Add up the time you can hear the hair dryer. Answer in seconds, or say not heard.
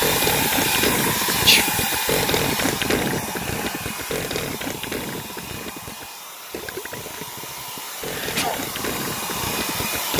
10 s.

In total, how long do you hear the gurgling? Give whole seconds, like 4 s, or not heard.
10 s.